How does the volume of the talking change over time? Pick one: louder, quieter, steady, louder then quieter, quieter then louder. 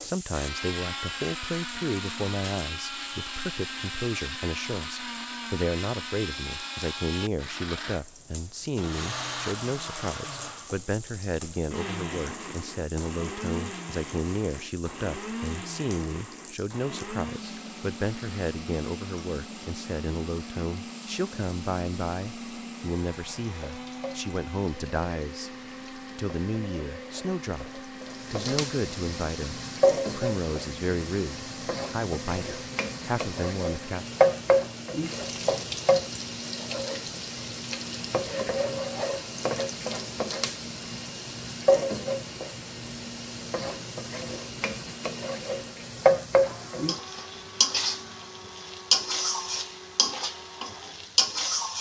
steady.